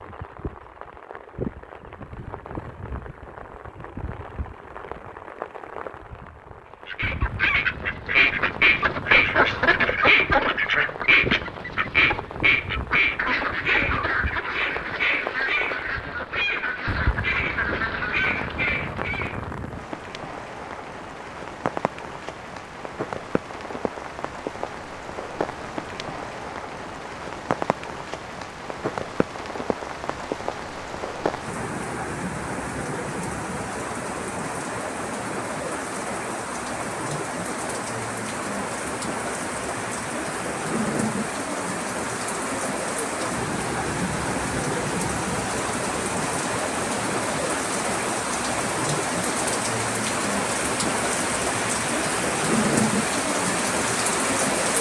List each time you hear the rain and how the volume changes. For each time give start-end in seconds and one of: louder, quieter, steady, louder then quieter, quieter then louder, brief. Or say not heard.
0.0-54.7 louder.